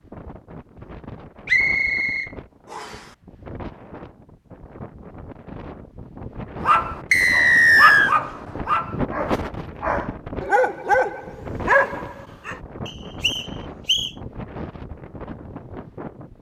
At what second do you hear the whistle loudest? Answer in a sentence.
The volume of the whistle peaks at 8 seconds.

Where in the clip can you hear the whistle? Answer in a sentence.
You can hear the whistle from 1.4 to 3.0 s, from 7.1 to 8.2 s and from 12.8 to 14.1 s.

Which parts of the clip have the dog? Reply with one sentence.
You can hear the dog from 6.6 to 12.6 s.